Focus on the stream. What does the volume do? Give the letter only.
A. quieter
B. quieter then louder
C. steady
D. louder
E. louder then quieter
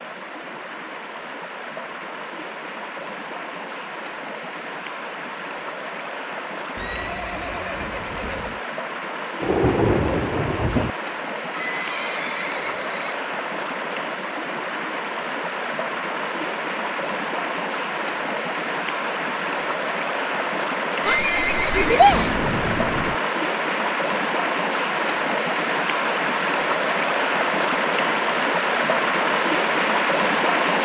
D.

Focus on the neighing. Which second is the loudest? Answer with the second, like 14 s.
22 s.